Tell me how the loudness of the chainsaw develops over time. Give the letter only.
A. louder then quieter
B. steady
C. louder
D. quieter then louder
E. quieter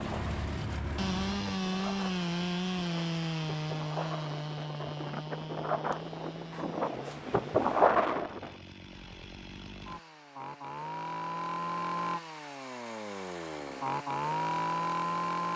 D.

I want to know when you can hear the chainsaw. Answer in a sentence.
The chainsaw can be heard from 0.0 to 15.5 s.